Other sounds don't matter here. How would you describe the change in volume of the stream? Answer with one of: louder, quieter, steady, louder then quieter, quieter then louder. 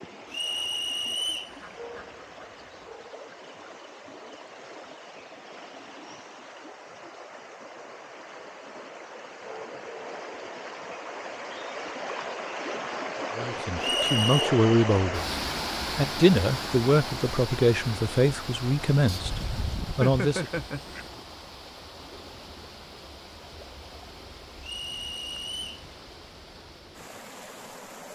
louder then quieter.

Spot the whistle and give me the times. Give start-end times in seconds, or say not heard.
0.3-1.6, 13.8-14.5, 24.6-25.9.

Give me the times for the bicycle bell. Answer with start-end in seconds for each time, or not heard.
not heard.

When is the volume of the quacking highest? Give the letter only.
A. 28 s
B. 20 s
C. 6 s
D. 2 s
B.